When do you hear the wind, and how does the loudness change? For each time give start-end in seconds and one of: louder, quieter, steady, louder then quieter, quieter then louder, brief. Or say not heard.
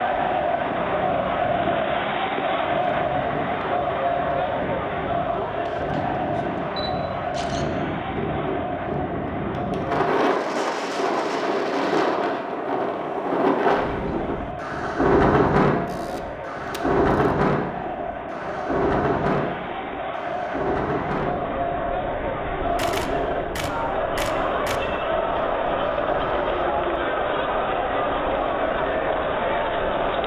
0.0-30.2 louder then quieter.